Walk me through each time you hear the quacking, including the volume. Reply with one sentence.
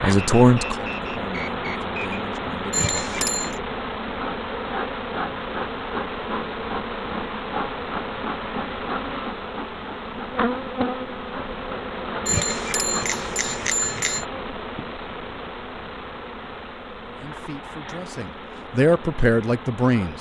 The quacking can't be heard in this clip.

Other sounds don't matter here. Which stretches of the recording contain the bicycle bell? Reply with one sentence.
You can hear the bicycle bell from 2.7 to 3.5 s and from 12.2 to 14.2 s.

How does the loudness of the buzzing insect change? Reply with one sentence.
The loudness of the buzzing insect goes down.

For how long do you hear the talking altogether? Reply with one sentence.
The talking can be heard for 6 seconds in total.